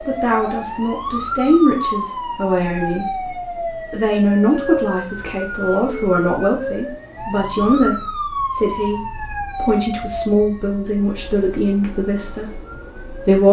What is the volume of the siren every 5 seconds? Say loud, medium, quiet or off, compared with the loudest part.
loud, loud, medium.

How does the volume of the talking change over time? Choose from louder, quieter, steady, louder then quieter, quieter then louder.
steady.